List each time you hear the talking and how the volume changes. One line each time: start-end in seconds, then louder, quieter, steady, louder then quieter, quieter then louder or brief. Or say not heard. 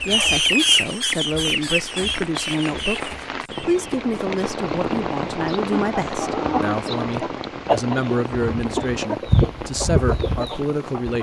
0.0-11.1 steady.